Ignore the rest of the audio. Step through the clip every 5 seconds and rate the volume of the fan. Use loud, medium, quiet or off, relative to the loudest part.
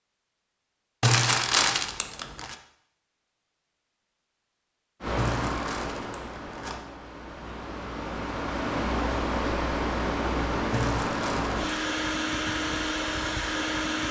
off, loud, loud.